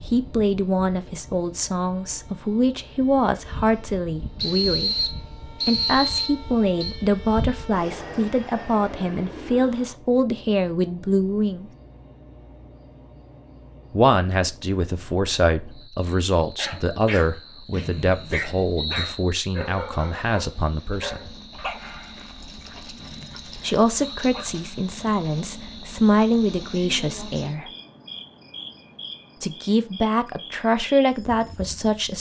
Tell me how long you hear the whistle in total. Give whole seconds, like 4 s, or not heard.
6 s.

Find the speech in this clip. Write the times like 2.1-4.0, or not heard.
0.1-11.7, 13.9-21.3, 23.6-27.7, 29.4-32.1.